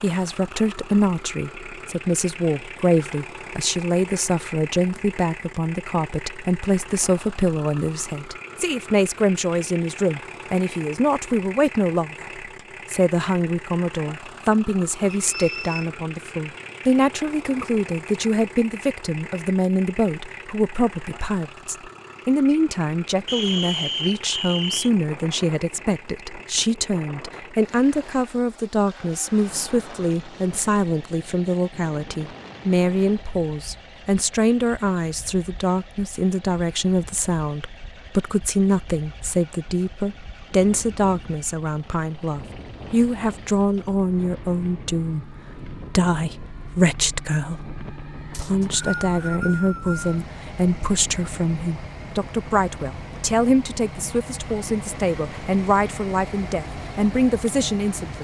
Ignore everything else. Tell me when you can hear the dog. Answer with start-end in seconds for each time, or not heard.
not heard.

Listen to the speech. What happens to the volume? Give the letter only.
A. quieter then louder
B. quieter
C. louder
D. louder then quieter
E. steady
E.